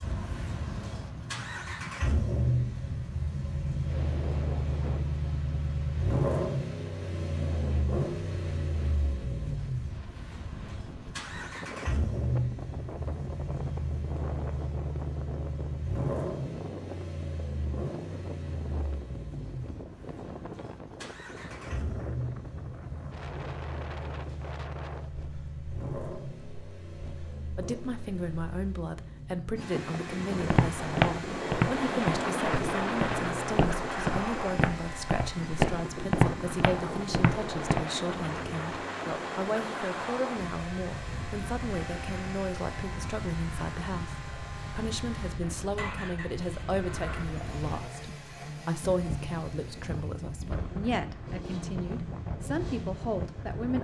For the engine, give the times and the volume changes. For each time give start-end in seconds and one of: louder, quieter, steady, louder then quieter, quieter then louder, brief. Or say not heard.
0.0-53.7 quieter.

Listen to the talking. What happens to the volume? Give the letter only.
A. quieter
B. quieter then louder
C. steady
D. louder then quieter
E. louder
C.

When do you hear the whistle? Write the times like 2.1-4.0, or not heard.
not heard.